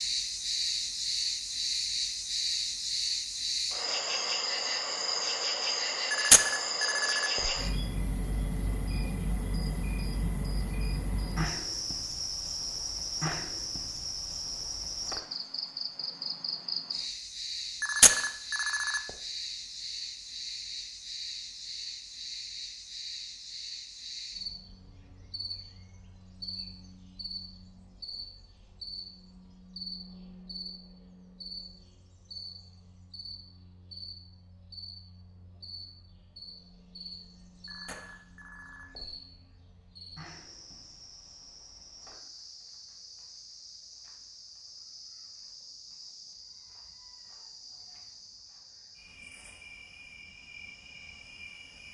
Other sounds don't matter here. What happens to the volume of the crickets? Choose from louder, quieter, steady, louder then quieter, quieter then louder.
quieter.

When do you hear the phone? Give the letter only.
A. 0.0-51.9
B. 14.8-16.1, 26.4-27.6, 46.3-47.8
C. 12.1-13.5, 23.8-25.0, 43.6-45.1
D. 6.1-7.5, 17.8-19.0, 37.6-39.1
D.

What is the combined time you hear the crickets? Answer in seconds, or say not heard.
52 s.